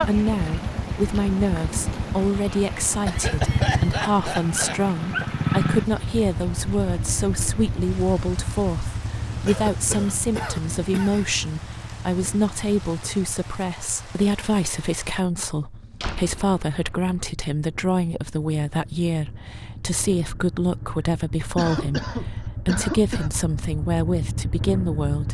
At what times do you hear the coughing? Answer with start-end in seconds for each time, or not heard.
3.0-4.8, 9.4-11.3, 21.6-23.3.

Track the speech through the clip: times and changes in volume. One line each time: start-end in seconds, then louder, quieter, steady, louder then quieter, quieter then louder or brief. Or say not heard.
0.0-25.3 steady.